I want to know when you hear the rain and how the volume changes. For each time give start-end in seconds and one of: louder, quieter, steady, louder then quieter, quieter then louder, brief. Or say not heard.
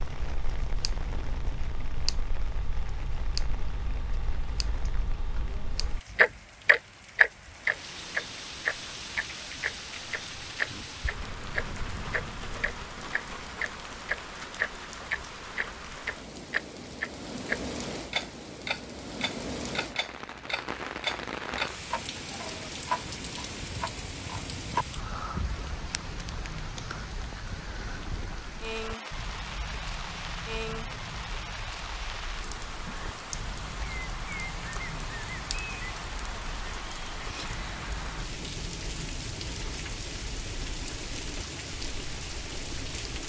0.0-43.2 louder.